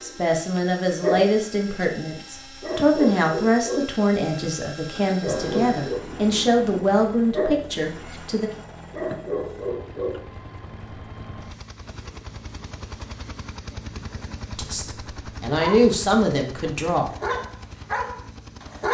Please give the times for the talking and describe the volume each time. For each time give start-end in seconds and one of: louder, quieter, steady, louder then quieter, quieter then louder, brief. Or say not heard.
0.0-8.5 steady
14.6-17.1 brief.